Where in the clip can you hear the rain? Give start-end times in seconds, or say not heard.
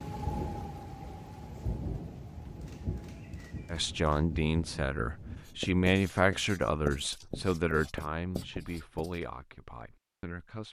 0.0-5.6.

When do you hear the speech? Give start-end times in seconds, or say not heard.
3.7-10.6.